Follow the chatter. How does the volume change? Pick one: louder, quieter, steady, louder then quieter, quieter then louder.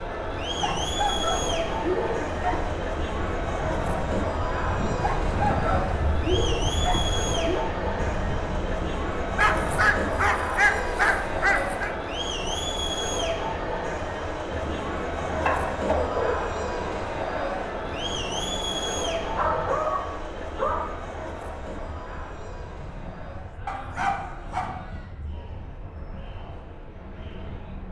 quieter.